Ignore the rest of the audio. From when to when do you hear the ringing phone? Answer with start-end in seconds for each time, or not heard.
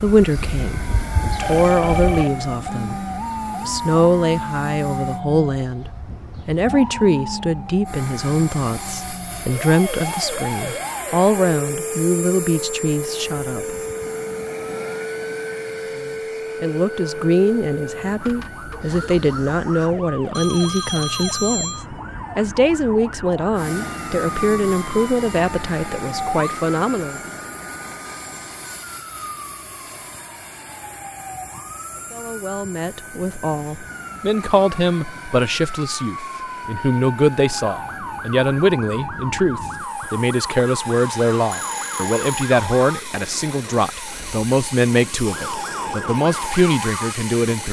1.4-2.3, 20.3-21.9, 41.5-42.5.